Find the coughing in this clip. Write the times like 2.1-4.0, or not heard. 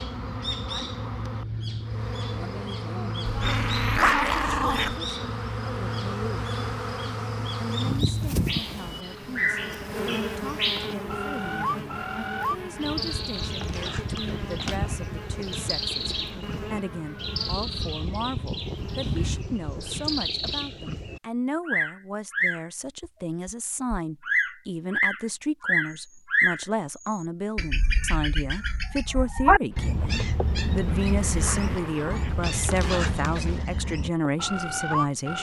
not heard.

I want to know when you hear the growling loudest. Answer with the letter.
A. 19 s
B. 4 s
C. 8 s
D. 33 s
B.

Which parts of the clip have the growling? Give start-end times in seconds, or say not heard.
3.2-5.0, 30.8-32.5.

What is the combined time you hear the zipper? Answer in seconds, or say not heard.
3 s.